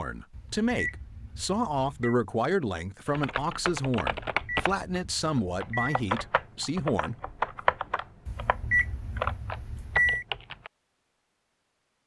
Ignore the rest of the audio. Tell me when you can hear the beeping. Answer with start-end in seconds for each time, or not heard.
0.3-2.1, 4.2-6.0, 8.2-10.2.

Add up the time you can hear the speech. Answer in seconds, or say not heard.
7 s.